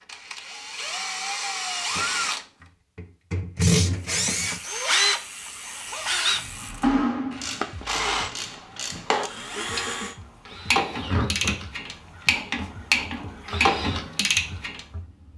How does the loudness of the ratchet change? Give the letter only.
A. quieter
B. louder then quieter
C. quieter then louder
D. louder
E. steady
D.